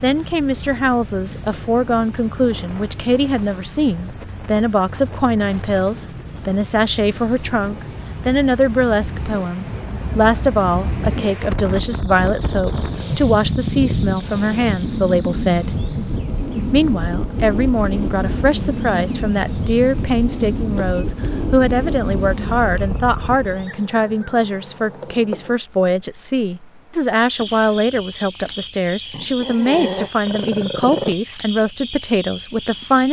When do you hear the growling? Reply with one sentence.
The growling can be heard from 29.1 to 31.1 s.